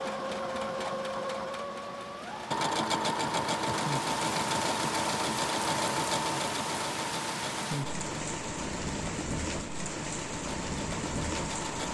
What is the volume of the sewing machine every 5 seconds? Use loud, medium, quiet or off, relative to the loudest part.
loud, loud, medium.